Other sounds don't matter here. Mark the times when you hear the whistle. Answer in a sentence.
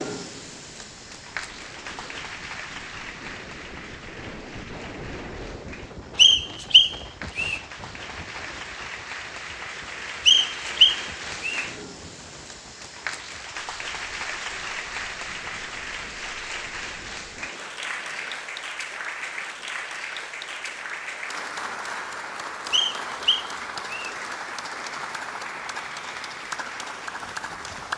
The whistle can be heard from 6.2 to 7.6 s, from 10.2 to 11.7 s and from 22.7 to 24.1 s.